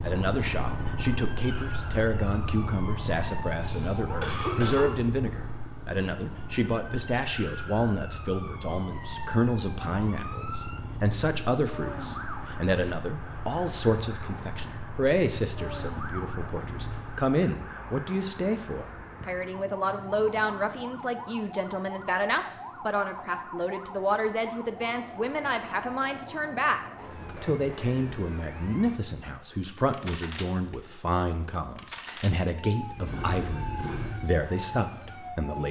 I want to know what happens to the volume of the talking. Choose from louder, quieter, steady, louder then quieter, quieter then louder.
steady.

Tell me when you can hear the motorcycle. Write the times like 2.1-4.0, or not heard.
0.0-17.3, 32.8-35.5.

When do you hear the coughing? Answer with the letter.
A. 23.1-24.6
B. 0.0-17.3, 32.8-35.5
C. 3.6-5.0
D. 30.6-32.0
C.